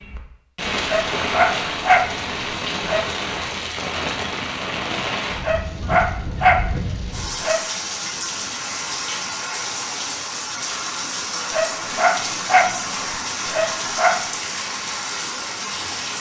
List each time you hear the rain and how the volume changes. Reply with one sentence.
The rain can be heard from 0.0 to 16.1 s, at a steady volume.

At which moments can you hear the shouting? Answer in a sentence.
You can't hear the shouting here.